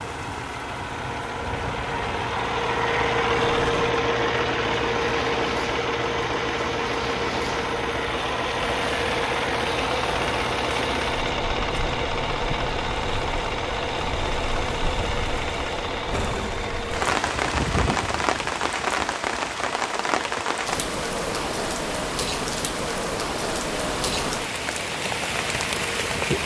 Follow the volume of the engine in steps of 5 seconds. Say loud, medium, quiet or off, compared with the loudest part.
loud, loud, loud, medium, medium, medium.